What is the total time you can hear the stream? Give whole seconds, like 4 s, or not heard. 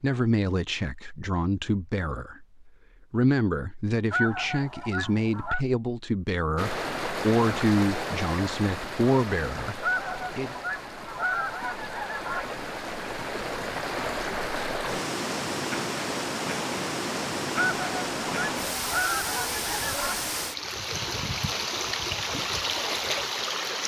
17 s.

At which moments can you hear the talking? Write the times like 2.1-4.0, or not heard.
0.0-10.6.